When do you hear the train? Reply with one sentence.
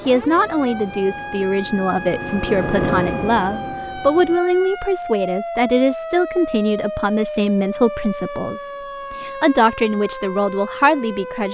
You can hear the train from 0.0 to 4.4 s.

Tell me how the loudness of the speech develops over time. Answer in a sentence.
The volume of the speech stays about the same.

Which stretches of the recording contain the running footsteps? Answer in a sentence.
You can't hear the running footsteps here.